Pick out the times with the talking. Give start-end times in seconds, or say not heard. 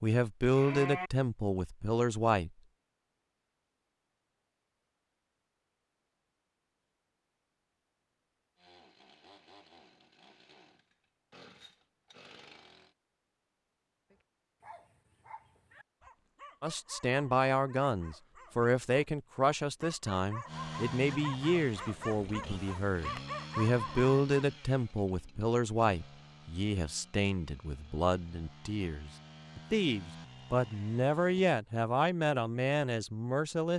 0.0-2.5, 16.6-33.7.